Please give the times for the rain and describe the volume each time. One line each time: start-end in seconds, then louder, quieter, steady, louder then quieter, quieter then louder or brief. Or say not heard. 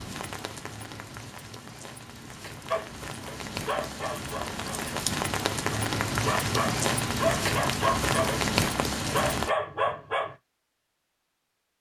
0.0-9.5 louder.